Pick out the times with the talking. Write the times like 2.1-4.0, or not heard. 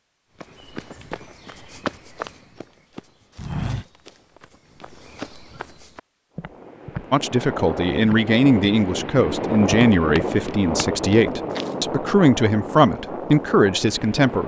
7.1-14.4.